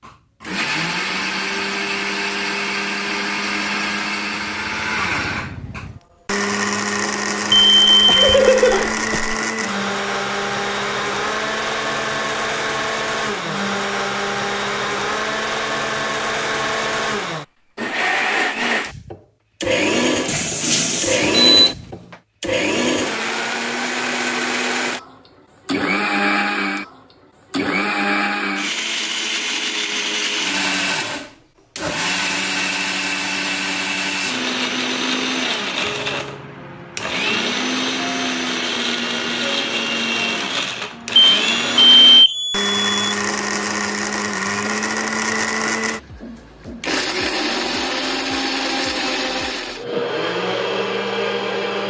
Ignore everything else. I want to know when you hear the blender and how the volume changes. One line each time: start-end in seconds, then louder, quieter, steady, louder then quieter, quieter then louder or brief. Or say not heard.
0.0-51.8 steady.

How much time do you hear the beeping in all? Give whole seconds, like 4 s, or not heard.
5 s.